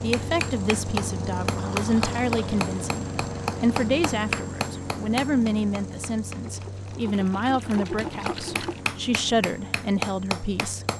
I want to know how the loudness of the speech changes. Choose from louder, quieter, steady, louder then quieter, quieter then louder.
steady.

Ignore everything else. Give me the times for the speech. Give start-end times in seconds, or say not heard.
0.0-10.8.